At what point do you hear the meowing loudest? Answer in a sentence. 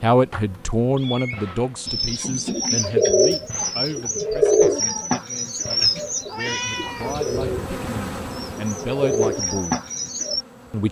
The volume of the meowing peaks at 7 seconds.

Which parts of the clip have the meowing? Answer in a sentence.
You can hear the meowing from 0.3 to 1.6 s and from 6.2 to 7.2 s.